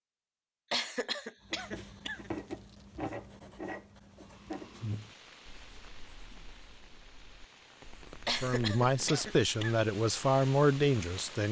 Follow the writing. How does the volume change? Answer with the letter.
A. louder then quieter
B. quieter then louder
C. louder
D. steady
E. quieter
E.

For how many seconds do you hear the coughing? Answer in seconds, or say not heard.
3 s.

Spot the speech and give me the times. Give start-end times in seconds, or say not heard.
8.4-11.4.